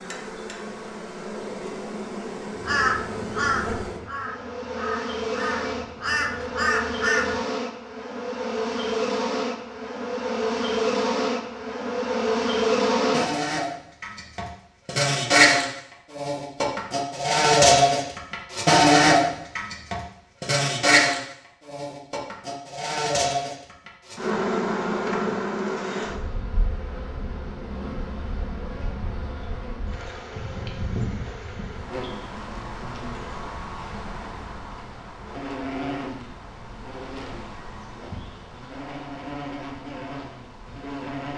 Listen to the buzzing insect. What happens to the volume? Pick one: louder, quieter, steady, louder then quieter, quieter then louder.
louder then quieter.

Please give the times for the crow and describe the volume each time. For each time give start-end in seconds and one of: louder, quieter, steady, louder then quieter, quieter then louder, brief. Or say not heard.
2.6-7.4 quieter then louder.